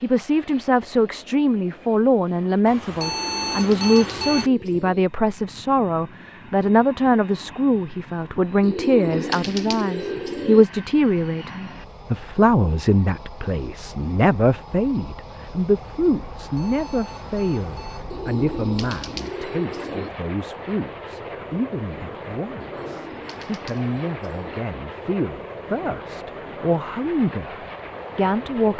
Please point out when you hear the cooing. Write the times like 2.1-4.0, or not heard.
3.0-5.0, 8.6-10.7, 18.1-20.1, 22.6-24.6.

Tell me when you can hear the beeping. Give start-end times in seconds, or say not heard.
2.6-4.5, 16.4-18.1.